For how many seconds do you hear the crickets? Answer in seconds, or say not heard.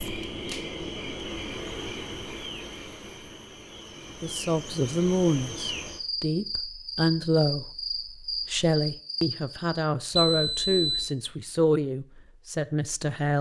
10 s.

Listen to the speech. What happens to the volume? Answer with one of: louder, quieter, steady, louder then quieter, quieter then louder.
steady.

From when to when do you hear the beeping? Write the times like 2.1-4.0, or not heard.
10.1-11.2.